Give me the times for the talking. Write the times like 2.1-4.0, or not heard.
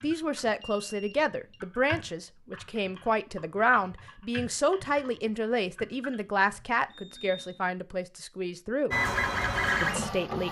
0.0-8.9, 9.8-10.4.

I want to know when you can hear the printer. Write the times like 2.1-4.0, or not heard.
8.9-10.4.